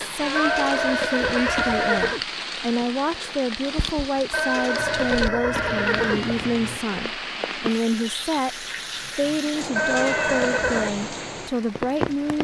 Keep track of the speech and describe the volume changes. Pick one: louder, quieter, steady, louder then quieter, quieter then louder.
steady.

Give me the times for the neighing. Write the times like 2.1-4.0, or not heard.
0.3-2.2, 4.3-6.3, 9.8-10.9.